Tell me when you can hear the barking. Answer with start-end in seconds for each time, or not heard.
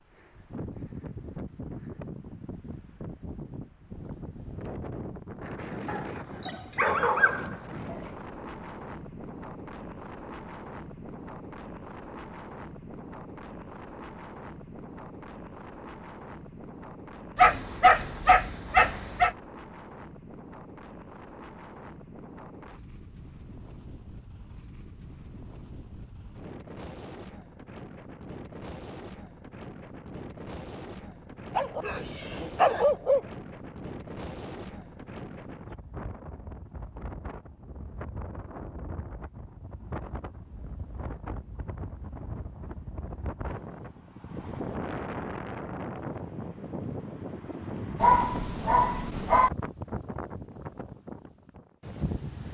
5.8-8.0, 17.4-19.4, 31.6-33.2, 48.0-49.5.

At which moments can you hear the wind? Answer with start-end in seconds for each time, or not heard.
0.0-52.4.